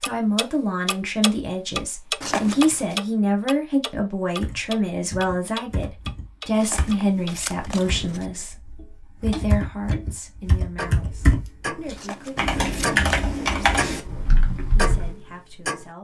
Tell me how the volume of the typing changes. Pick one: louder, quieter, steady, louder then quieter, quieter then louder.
louder then quieter.